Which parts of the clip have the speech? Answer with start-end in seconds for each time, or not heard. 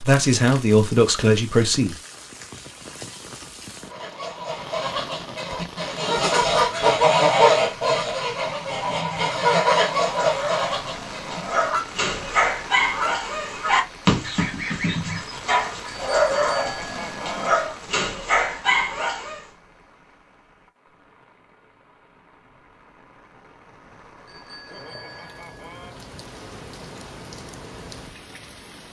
0.0-1.9.